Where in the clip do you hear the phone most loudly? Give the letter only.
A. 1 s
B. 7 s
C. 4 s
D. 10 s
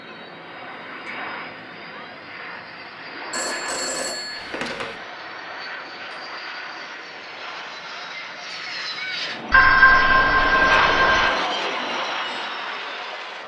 D.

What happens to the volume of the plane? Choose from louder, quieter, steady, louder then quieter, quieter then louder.
louder.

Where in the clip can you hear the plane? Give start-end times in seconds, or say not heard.
0.0-13.4.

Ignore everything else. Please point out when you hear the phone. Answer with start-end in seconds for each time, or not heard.
3.3-5.0, 9.5-11.2.